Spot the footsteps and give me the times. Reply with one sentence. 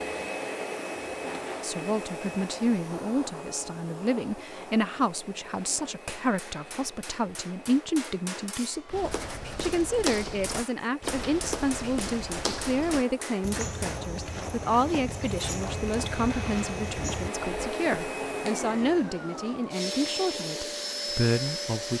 The footsteps can be heard from 8.9 to 18.1 s.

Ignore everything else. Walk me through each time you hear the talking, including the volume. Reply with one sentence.
You can hear the talking from 1.6 to 21.9 s, at a steady volume.